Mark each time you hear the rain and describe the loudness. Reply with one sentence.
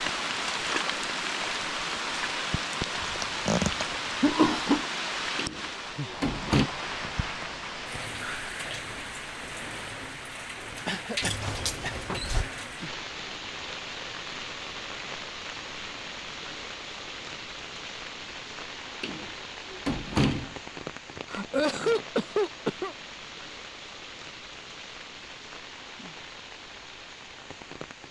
You can hear the rain from 0.0 to 28.0 s, getting quieter.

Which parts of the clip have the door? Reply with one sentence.
The door can be heard from 5.3 to 6.7 s, from 11.2 to 12.5 s and from 19.0 to 20.6 s.